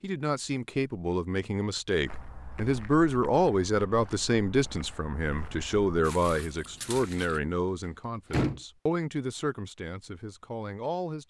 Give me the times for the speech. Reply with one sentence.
You can hear the speech from 0.0 to 11.2 s.